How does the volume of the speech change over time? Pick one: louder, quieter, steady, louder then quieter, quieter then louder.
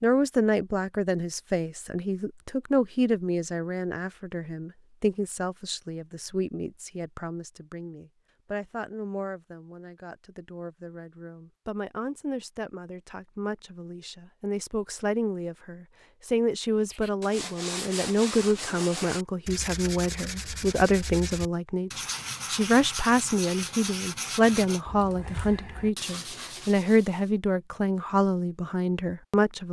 quieter then louder.